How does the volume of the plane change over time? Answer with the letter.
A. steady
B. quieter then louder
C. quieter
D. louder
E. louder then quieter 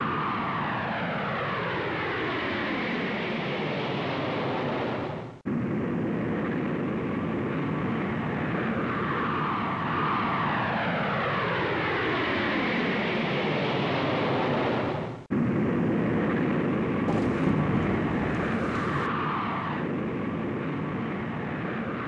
A.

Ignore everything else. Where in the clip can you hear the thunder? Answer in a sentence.
You can hear the thunder from 17.1 to 19.1 s.